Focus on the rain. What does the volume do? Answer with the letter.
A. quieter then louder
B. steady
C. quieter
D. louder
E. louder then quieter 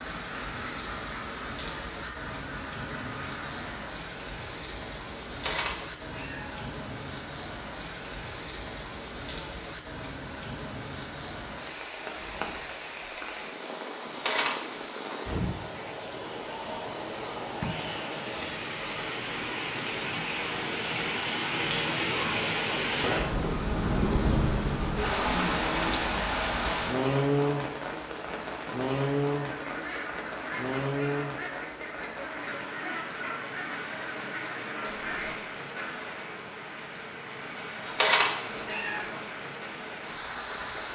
E.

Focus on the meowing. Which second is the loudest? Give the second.
38 s.